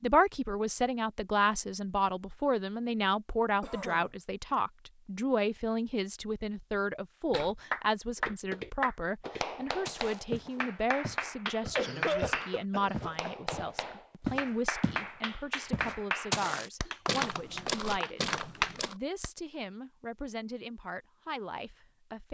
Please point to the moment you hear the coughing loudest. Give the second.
12 s.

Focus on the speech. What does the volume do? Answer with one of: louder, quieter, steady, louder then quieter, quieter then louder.
quieter.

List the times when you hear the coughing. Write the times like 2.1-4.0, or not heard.
3.6-4.1, 11.4-13.3.